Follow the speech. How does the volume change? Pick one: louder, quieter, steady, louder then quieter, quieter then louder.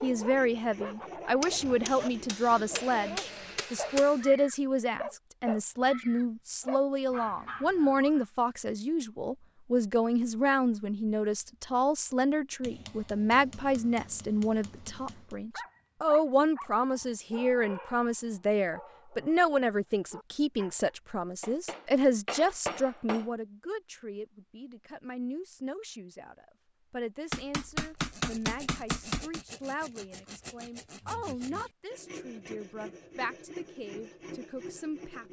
quieter.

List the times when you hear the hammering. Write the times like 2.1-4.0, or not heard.
1.4-4.2, 12.6-15.3, 21.4-23.3, 27.3-29.4.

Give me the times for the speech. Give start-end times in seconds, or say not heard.
0.0-35.2.